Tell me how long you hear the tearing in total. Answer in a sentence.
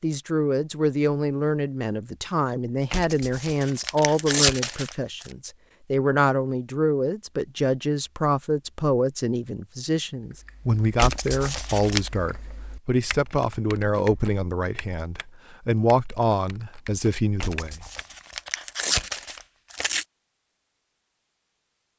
You can hear the tearing for 6 seconds altogether.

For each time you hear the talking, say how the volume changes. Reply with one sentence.
You can hear the talking from 0.0 to 17.9 s, at a steady volume.